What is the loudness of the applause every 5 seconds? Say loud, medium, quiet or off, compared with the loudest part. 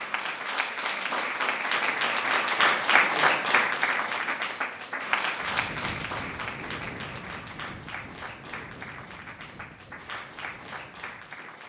loud, medium, quiet.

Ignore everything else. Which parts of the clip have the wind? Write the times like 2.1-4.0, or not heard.
5.3-11.6.